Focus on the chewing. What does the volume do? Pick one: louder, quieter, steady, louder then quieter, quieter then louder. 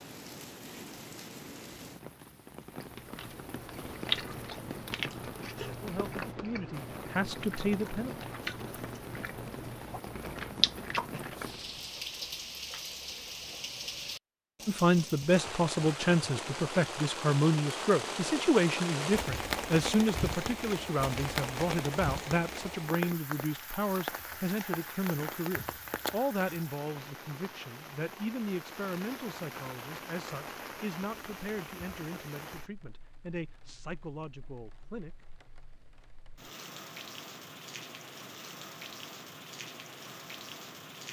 quieter then louder.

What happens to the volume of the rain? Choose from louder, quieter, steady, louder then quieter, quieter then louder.
louder then quieter.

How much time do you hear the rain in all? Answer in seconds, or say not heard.
41 s.